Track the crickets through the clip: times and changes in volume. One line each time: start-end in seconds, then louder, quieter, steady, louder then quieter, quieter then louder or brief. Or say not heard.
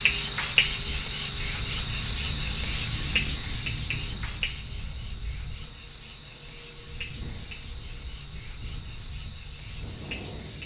0.0-10.6 quieter.